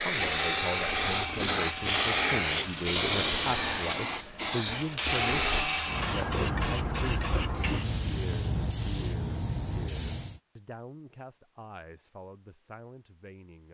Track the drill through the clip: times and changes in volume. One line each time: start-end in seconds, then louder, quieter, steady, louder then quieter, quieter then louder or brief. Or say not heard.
0.0-6.3 quieter then louder.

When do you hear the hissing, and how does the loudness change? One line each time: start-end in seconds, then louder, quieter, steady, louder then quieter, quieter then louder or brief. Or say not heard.
0.0-10.4 quieter.